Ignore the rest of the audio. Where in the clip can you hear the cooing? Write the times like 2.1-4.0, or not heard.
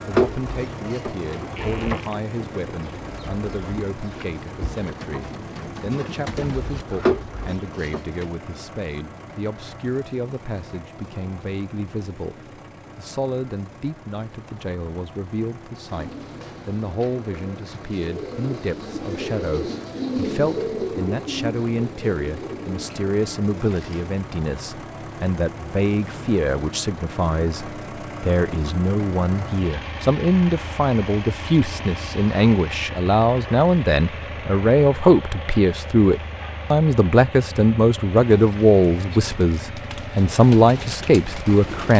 0.1-8.3, 15.8-24.1, 38.2-41.9.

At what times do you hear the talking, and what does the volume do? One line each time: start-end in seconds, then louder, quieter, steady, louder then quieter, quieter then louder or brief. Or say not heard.
0.1-41.9 louder.